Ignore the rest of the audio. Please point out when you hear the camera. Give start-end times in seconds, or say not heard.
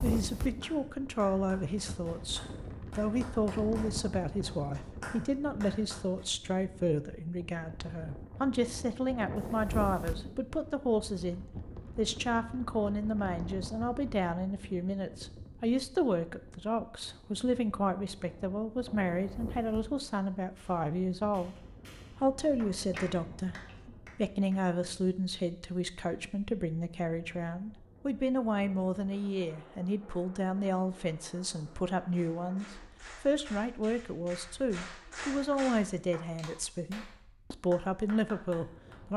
not heard.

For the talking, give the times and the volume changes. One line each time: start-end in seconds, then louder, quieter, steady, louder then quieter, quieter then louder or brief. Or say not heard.
0.0-39.1 steady.